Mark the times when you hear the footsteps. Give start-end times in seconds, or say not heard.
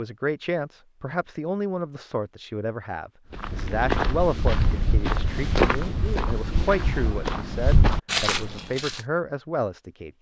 3.3-9.0.